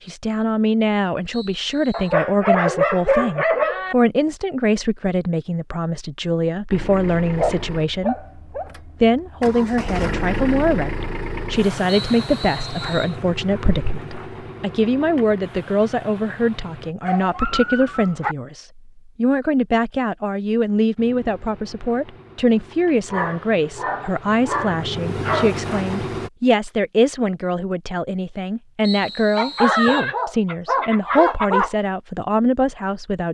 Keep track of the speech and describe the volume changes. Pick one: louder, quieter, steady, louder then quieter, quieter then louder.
steady.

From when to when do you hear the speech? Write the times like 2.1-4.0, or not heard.
0.1-8.2, 9.0-33.2.